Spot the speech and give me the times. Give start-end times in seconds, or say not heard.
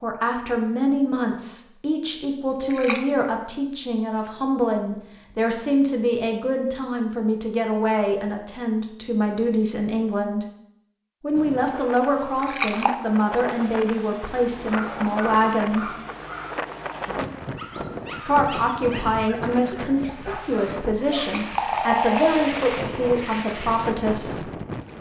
0.0-10.4, 11.2-15.9, 18.2-24.5.